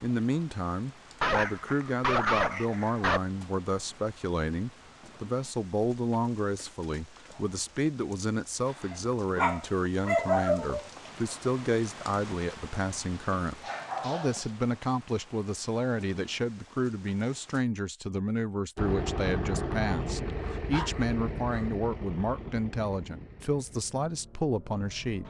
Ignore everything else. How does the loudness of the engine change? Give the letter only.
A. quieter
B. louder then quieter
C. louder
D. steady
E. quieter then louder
A.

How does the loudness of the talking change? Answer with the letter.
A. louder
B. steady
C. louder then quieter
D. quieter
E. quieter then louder
B.